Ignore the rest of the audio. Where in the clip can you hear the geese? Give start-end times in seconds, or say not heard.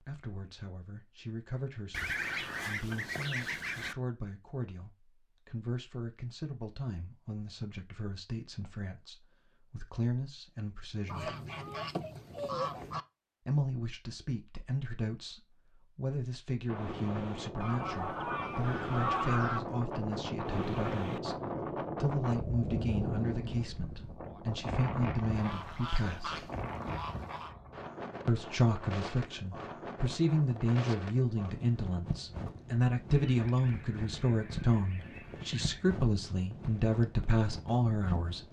1.9-4.0, 11.1-13.1, 17.6-19.6, 25.4-27.6, 33.2-35.9.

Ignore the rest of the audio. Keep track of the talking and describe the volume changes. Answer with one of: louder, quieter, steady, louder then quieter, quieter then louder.
louder.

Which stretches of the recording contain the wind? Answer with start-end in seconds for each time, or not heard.
16.6-38.4.